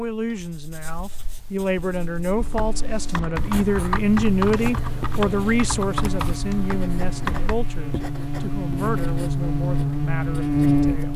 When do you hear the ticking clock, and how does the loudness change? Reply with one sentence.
You can't hear the ticking clock here.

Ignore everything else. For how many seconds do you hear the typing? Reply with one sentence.
The typing can be heard for 5 seconds in total.